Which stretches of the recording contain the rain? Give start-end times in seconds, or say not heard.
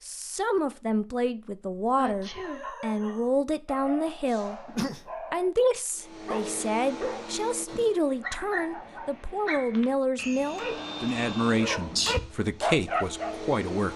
not heard.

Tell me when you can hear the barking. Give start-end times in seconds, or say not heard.
2.1-13.3.